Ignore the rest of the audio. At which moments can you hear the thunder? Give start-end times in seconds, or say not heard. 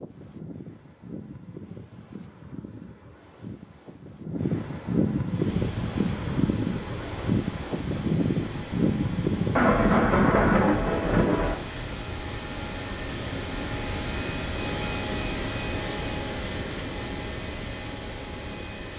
9.6-11.6.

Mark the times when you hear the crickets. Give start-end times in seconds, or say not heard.
0.0-18.9.